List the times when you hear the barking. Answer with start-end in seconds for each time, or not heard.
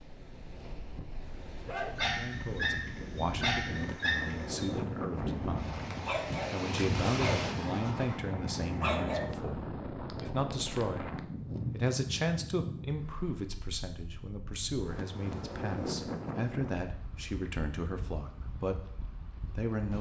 1.6-9.3.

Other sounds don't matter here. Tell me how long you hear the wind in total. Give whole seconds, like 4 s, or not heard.
20 s.